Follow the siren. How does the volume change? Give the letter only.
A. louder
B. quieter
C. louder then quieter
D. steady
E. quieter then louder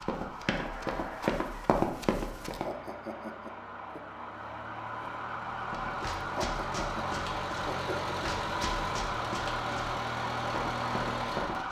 A.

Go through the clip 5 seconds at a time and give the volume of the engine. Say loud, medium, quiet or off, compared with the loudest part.
medium, loud, loud.